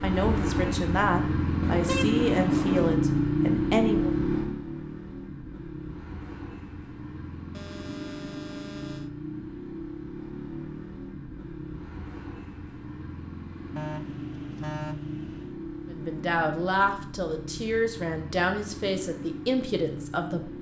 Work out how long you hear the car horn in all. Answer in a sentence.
You can hear the car horn for 5 seconds altogether.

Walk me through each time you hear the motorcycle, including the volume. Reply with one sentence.
The motorcycle can be heard from 0.0 to 20.5 s, getting quieter.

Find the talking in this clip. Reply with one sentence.
You can hear the talking from 0.0 to 4.2 s and from 15.9 to 20.5 s.